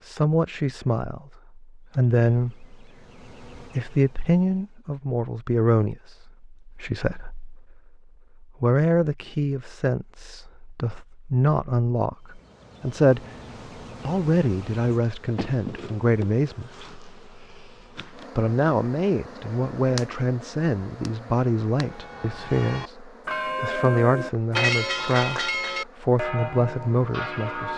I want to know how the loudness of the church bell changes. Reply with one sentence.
The volume of the church bell goes up, then down.